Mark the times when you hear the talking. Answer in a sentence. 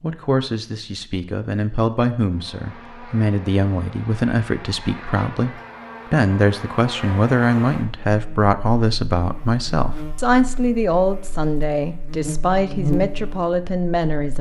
The talking can be heard from 0.0 to 14.3 s.